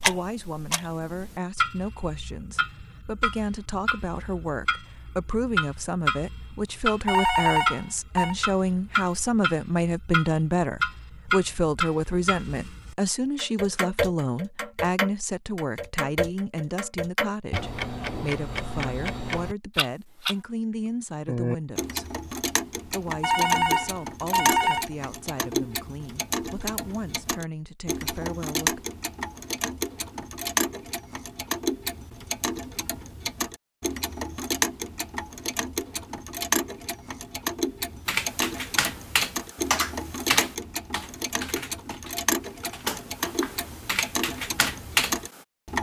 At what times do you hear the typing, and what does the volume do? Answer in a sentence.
The typing can be heard from 38.0 to 45.4 s, getting quieter then louder.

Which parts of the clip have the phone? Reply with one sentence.
You can hear the phone from 7.0 to 8.3 s and from 23.2 to 24.9 s.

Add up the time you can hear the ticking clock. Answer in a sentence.
You can hear the ticking clock for 45 seconds altogether.